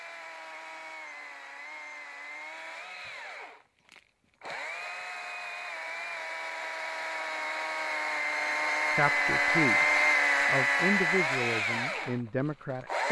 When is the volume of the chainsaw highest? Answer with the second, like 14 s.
10 s.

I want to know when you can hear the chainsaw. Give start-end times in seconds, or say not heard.
0.0-13.0.